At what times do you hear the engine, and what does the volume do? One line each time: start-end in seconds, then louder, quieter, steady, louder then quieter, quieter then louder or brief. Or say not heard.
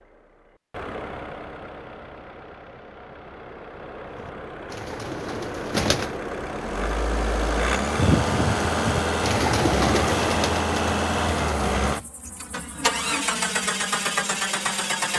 0.0-15.1 louder.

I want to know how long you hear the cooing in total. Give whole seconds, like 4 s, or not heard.
6 s.